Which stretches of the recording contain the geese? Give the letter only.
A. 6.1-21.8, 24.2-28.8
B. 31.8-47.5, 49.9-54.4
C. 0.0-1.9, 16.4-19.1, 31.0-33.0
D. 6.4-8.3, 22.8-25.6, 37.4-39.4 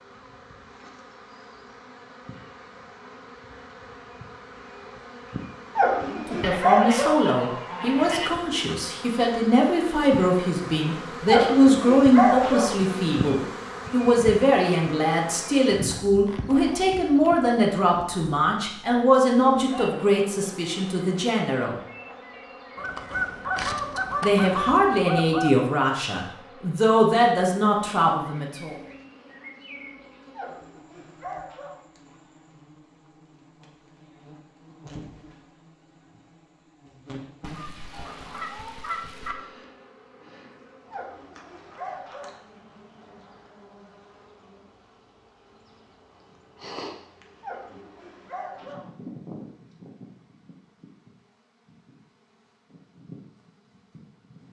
D.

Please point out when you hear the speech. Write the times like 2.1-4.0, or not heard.
6.1-21.8, 24.2-28.8.